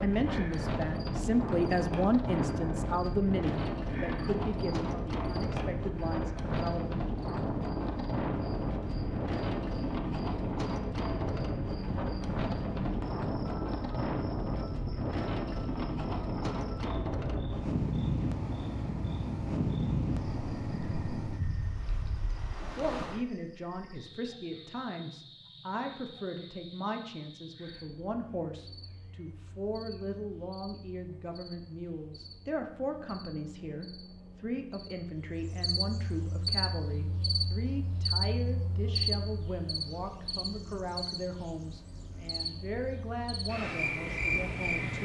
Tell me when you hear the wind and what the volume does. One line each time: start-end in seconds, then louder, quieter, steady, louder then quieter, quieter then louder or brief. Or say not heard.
0.0-23.2 steady.